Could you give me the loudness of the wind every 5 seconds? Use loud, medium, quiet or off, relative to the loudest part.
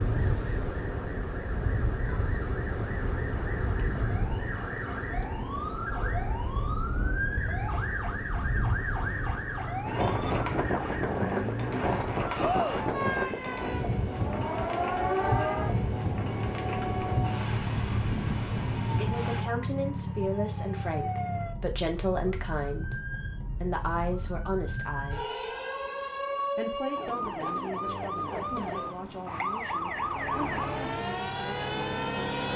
medium, medium, loud, loud, off, off, off.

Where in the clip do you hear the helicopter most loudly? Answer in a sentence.
The loudest moment of the helicopter is at 32 seconds.